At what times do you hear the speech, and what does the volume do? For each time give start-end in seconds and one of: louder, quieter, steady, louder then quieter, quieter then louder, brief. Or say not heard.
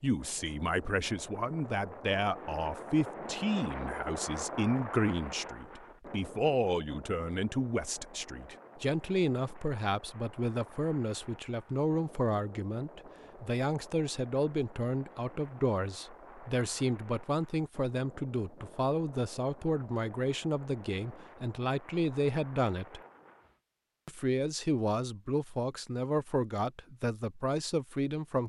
0.0-23.0 steady
24.1-28.4 steady.